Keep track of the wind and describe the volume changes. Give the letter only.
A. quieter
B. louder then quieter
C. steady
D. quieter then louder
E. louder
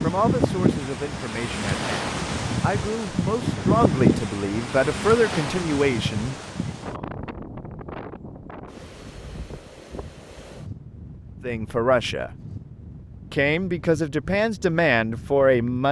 A.